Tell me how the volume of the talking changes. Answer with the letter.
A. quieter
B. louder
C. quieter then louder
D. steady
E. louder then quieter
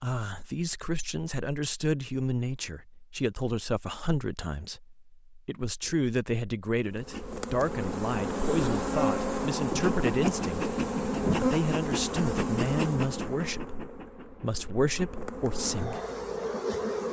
D.